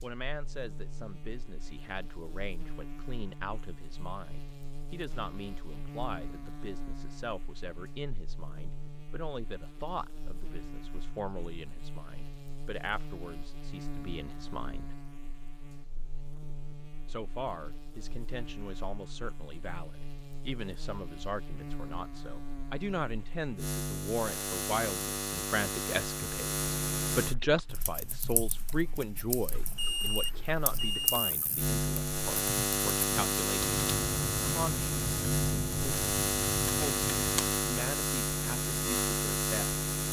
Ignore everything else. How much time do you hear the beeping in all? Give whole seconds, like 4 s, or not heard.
2 s.